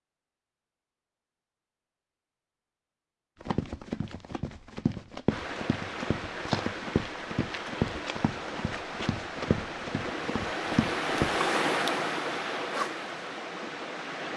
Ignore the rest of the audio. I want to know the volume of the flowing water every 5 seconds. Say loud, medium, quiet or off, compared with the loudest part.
off, medium, loud.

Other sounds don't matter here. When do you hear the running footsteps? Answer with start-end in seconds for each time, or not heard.
3.4-11.4.